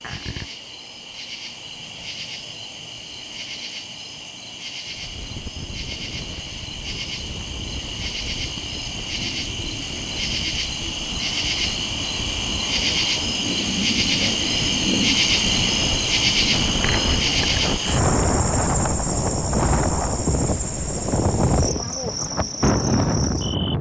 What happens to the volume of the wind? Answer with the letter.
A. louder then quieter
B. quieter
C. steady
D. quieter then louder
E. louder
E.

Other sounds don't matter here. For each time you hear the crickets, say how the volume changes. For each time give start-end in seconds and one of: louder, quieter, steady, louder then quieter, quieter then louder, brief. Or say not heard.
0.0-23.7 louder then quieter.